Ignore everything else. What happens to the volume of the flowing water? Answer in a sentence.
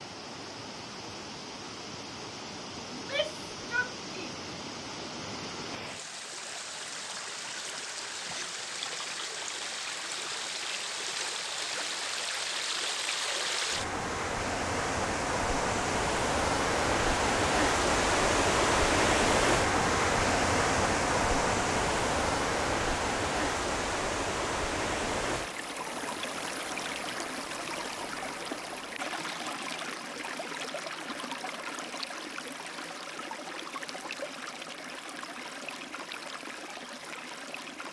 The volume of the flowing water goes up, then down.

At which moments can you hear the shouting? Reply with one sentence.
The shouting can be heard from 2.9 to 4.5 s.